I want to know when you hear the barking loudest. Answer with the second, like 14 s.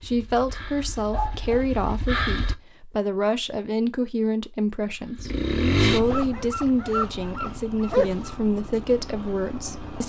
8 s.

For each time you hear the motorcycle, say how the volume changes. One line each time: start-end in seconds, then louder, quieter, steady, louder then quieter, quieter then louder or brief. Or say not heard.
0.0-2.5 brief
4.8-10.0 quieter.